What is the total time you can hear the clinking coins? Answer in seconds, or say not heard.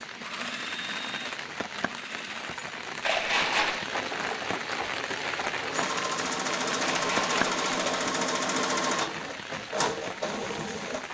2 s.